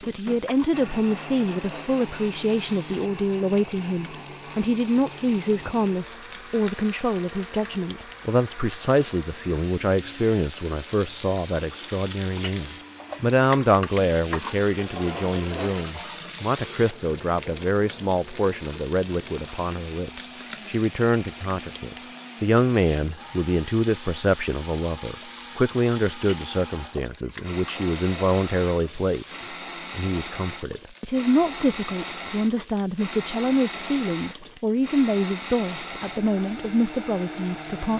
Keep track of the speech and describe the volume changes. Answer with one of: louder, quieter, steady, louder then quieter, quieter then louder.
steady.